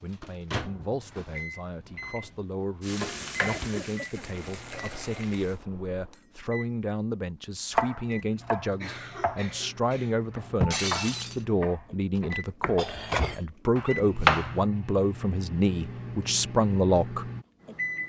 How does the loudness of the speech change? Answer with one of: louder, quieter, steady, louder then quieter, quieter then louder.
louder.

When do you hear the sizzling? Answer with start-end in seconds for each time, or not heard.
2.8-5.6.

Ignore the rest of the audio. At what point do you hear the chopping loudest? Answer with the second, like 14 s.
14 s.